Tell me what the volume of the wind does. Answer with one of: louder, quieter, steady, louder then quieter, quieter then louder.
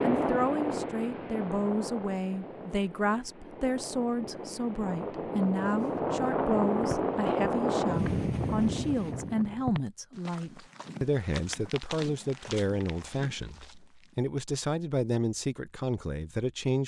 quieter then louder.